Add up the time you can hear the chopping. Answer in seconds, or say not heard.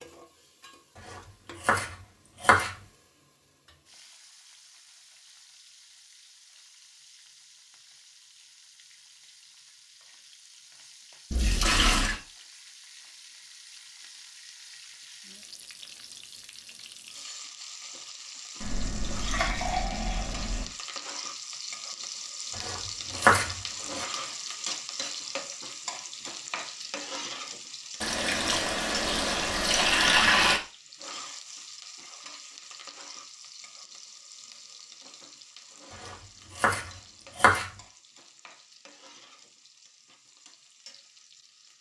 5 s.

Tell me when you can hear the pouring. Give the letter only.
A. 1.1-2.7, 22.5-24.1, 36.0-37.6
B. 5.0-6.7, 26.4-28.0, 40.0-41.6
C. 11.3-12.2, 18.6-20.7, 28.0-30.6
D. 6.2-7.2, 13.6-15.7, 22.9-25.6
C.